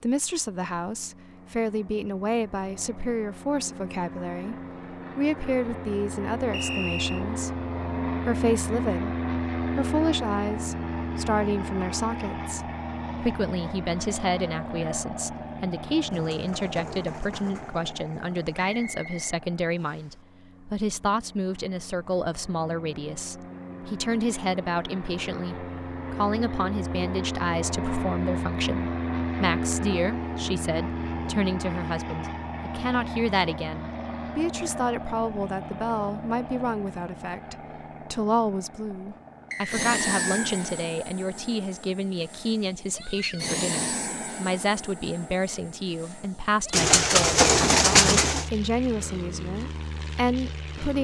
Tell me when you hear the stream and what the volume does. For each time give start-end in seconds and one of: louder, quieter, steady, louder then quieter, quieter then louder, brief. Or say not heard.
not heard.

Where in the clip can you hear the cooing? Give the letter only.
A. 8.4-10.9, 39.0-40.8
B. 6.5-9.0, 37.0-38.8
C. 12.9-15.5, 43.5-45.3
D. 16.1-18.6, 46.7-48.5
D.